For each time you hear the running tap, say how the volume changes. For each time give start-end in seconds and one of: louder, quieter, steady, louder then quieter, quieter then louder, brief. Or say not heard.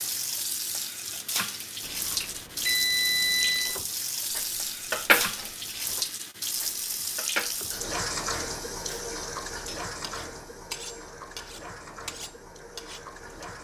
0.0-13.5 quieter.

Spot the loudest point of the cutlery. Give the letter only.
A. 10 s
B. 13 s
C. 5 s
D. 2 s
C.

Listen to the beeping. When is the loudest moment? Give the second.
3 s.